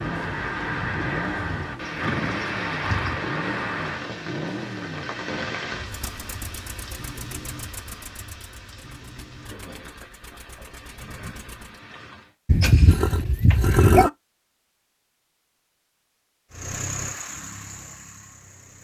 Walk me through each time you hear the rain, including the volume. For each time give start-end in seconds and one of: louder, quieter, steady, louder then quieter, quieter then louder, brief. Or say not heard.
0.0-12.3 quieter.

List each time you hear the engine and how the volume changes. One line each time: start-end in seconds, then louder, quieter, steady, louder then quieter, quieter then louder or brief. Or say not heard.
0.0-11.8 quieter
16.5-18.7 brief.